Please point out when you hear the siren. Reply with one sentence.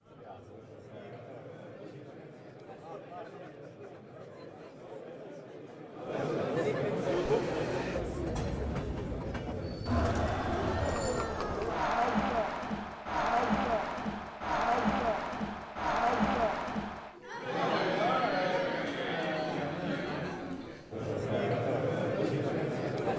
The siren can't be heard in this clip.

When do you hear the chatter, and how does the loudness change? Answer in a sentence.
The chatter can be heard from 0.0 to 23.1 s, getting louder.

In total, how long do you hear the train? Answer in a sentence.
The train can be heard for 4 seconds in total.